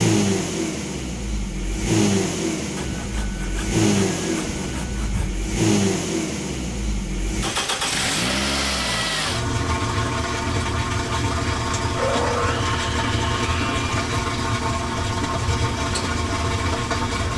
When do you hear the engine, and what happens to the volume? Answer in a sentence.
You can hear the engine from 0.0 to 17.3 s, at a steady volume.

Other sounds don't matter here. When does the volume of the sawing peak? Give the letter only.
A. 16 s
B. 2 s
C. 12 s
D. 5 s
C.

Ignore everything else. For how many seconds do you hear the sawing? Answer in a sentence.
You can hear the sawing for 5 seconds altogether.